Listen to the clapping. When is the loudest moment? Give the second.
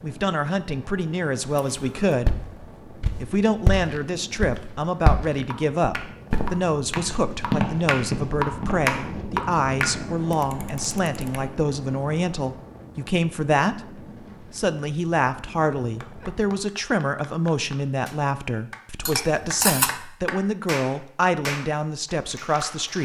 9 s.